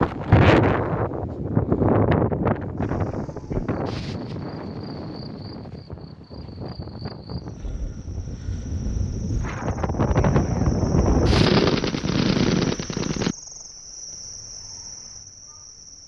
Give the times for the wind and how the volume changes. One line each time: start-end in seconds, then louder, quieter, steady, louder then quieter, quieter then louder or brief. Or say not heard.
0.0-11.5 quieter then louder.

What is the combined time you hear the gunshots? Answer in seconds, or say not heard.
2 s.